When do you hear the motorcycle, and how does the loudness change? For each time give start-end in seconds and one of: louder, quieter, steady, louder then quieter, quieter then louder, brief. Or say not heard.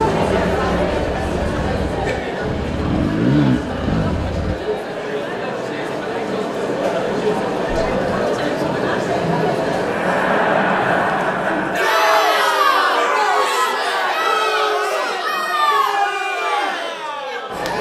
0.0-4.5 louder.